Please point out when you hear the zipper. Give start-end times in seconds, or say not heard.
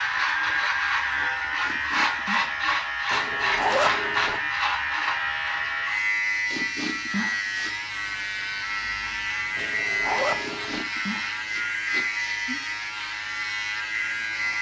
3.1-4.4, 9.6-10.8.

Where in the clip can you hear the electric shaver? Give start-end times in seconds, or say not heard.
0.0-14.5.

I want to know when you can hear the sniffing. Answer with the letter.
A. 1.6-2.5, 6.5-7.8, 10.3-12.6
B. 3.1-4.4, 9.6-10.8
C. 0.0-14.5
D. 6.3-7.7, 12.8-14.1
A.